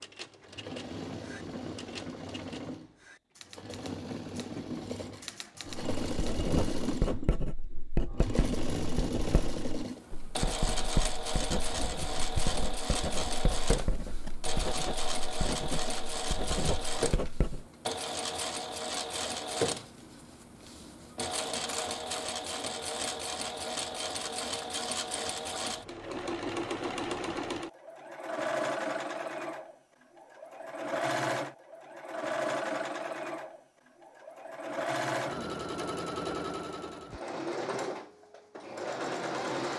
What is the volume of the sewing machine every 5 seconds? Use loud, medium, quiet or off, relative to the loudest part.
medium, loud, loud, loud, loud, loud, loud, loud.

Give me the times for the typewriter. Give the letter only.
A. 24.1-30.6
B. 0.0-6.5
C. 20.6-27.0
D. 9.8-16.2
B.